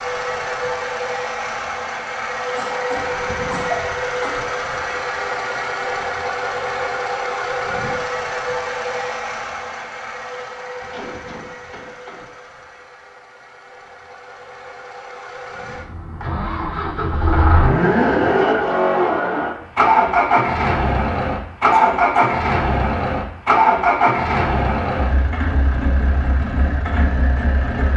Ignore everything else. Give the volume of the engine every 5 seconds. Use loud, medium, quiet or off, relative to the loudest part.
medium, medium, quiet, loud, loud, medium.